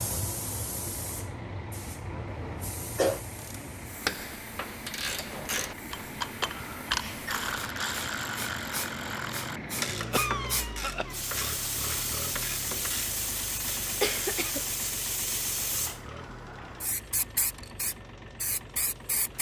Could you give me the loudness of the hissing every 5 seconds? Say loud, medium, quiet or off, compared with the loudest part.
medium, medium, loud, loud.